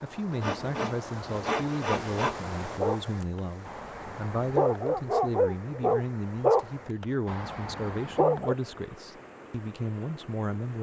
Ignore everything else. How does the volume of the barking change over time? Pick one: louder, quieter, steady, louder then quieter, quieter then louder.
louder then quieter.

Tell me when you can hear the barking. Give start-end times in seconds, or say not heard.
2.8-8.6.